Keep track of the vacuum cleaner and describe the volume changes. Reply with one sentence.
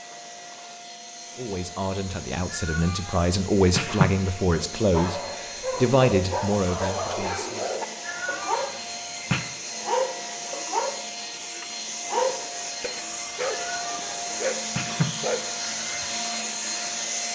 The loudness of the vacuum cleaner goes up.